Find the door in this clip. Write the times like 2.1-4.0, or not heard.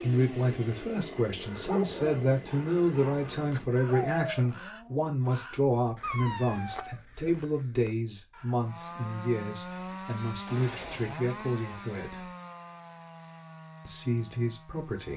10.4-11.1.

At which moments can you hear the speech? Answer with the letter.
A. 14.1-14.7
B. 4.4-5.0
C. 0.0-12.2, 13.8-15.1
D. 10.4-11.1
C.